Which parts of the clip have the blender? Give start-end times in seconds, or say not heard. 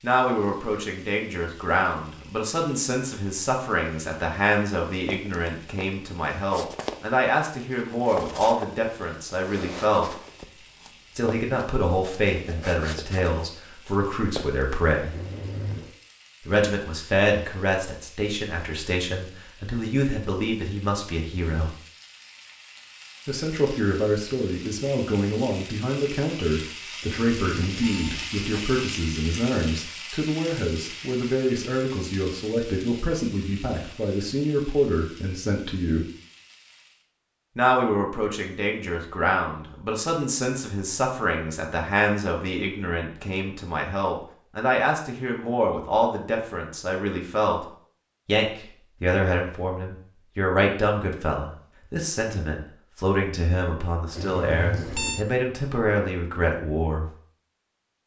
not heard.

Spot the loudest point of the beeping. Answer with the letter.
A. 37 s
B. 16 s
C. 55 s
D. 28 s
C.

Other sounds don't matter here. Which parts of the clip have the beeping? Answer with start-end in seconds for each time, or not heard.
15.1-15.9, 27.0-28.3, 54.1-55.2.